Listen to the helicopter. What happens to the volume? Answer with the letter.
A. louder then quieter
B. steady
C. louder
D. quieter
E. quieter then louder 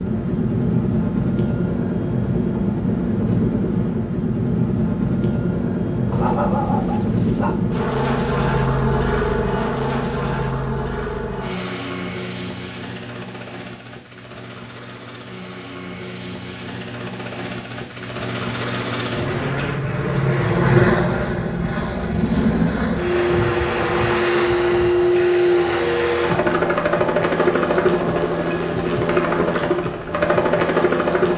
E.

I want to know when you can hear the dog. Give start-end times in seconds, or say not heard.
6.1-7.6.